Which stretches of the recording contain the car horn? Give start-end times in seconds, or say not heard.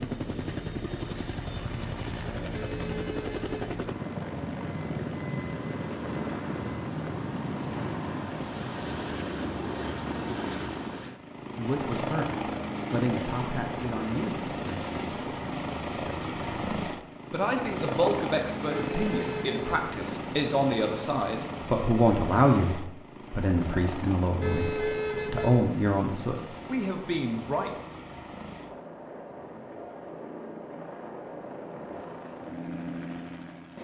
2.5-3.5, 18.7-19.8, 24.4-25.5.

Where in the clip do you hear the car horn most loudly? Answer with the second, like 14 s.
25 s.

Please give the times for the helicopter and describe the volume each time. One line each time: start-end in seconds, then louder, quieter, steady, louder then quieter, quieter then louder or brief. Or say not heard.
0.0-33.7 quieter.